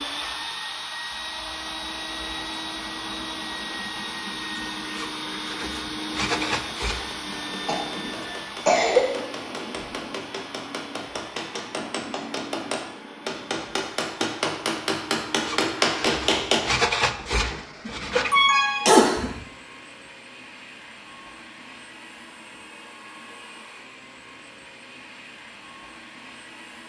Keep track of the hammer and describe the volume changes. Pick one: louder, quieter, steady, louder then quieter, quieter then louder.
louder.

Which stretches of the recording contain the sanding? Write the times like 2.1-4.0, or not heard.
5.0-7.2, 15.4-18.4.